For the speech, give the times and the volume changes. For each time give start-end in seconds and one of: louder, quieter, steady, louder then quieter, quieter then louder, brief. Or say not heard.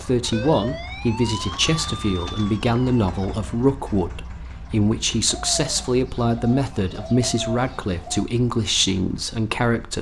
0.0-9.9 steady.